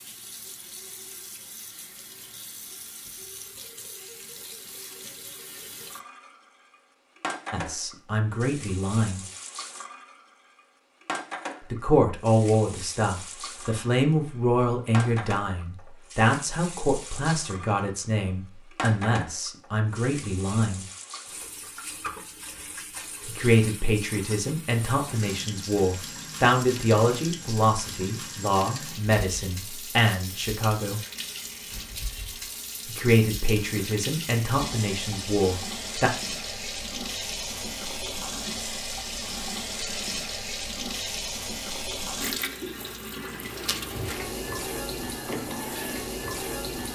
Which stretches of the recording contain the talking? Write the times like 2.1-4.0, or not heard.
7.5-9.2, 11.7-20.9, 23.2-31.0, 32.9-36.1.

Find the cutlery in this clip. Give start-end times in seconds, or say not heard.
not heard.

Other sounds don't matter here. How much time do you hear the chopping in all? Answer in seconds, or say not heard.
not heard.